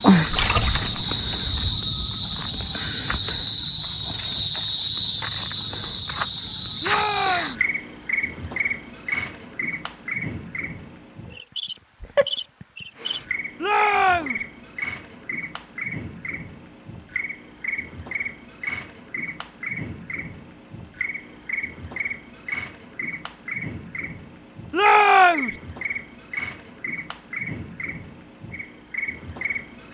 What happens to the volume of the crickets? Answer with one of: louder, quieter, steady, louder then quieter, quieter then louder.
quieter.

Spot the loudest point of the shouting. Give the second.
25 s.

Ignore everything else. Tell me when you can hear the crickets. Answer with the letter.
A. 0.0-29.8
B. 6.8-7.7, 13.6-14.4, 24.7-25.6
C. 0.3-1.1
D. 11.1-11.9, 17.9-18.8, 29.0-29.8
A.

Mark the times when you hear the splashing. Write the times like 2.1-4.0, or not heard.
0.3-1.1.